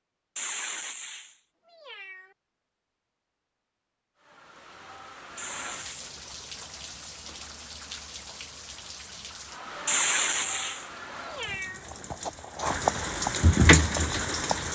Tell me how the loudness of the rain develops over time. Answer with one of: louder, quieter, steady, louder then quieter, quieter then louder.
louder.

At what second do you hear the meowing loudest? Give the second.
10 s.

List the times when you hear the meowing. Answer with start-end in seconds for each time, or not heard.
0.3-2.3, 5.3-6.1, 9.8-11.8.